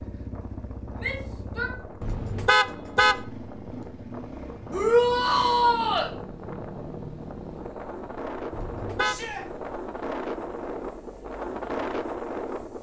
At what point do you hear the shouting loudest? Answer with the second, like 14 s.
5 s.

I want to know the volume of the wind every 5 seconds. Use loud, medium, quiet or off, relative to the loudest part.
medium, medium, loud.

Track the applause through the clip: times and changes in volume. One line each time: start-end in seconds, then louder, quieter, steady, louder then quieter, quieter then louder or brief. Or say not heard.
not heard.